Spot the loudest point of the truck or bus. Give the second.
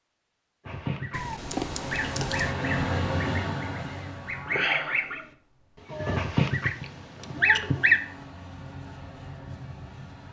3 s.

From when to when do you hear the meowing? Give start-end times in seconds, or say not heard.
1.1-2.5.